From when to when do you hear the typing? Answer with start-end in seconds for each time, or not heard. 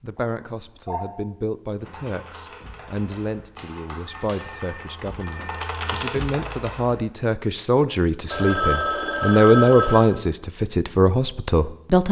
1.8-7.0.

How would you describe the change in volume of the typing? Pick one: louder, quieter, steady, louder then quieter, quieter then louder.
louder.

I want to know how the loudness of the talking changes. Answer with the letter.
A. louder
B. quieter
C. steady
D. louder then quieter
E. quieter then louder
A.